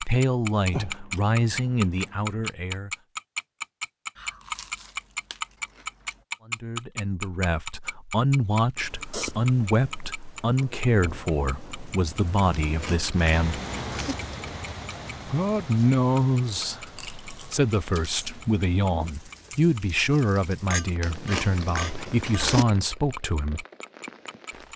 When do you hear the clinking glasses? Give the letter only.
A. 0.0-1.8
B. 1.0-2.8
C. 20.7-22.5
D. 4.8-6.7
C.